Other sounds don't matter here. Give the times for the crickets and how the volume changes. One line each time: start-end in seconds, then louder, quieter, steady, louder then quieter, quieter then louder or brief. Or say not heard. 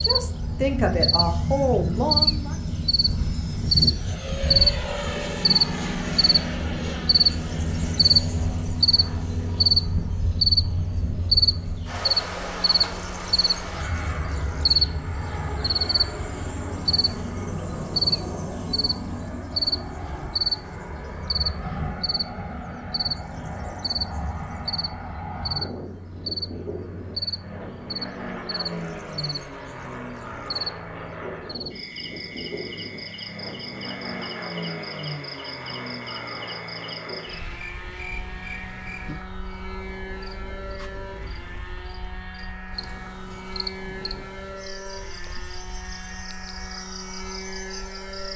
0.0-48.3 quieter.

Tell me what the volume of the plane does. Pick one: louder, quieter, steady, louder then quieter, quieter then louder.
quieter.